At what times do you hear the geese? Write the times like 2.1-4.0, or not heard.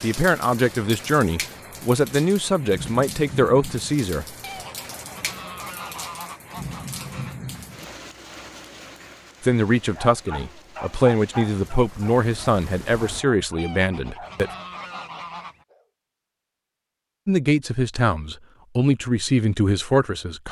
4.4-7.4, 13.6-15.7.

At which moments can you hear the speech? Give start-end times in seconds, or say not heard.
0.0-4.2, 9.4-14.5, 17.2-20.4.